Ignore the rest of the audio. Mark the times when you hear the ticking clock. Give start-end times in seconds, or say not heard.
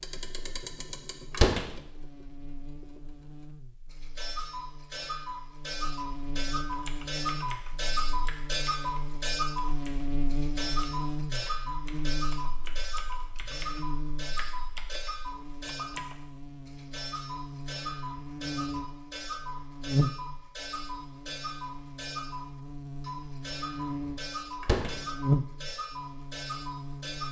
0.0-27.2.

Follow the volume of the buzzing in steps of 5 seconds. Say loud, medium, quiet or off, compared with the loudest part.
quiet, medium, medium, medium, medium, loud.